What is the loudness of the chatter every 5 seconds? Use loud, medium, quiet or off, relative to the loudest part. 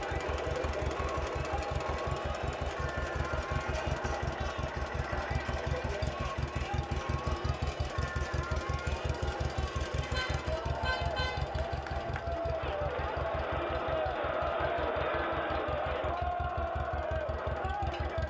medium, medium, loud, loud.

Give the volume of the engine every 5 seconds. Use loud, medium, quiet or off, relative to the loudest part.
loud, loud, medium, medium.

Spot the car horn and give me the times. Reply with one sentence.
You can hear the car horn from 10.0 to 11.6 s.